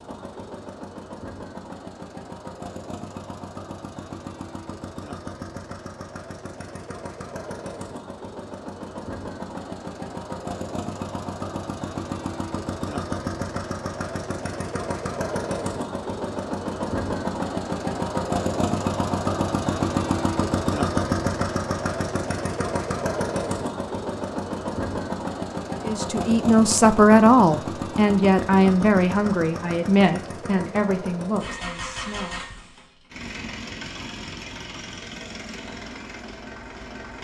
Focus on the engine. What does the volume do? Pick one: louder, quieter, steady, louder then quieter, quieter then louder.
louder then quieter.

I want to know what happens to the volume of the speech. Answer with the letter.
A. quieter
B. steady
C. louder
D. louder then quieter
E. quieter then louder
A.